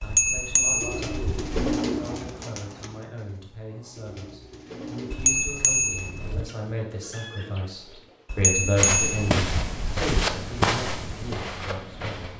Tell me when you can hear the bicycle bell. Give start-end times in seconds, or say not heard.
0.0-1.6, 5.1-6.5, 8.3-10.1.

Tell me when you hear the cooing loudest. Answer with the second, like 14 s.
2 s.